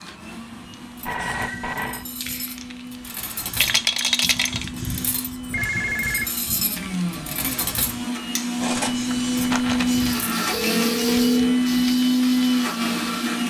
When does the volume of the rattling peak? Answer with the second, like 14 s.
4 s.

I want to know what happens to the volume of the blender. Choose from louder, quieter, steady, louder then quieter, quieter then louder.
louder.